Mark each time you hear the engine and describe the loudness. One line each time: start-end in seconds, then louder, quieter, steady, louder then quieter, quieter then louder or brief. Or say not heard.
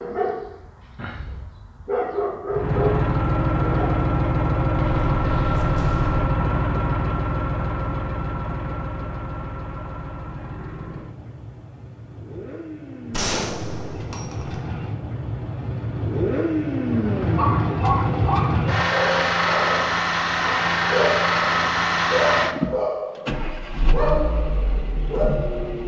2.5-25.8 quieter then louder.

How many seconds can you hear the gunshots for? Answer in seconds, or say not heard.
3 s.